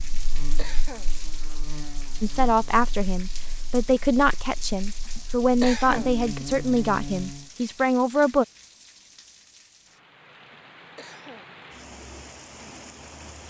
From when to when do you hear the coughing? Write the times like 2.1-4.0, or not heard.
0.0-1.1, 5.0-6.2, 10.4-11.5.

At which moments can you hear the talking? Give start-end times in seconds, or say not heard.
2.2-8.4.